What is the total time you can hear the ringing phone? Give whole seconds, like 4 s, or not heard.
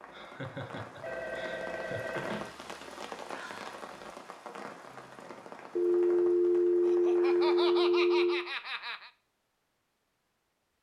4 s.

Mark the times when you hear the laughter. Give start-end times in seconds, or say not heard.
0.1-2.1, 6.8-9.1.